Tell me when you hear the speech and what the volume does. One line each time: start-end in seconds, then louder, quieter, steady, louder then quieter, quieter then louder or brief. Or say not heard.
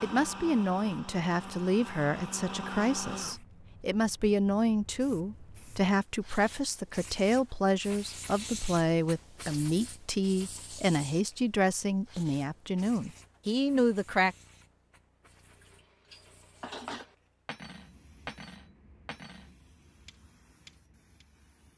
0.0-14.3 steady.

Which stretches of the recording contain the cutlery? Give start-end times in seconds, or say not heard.
15.4-21.2.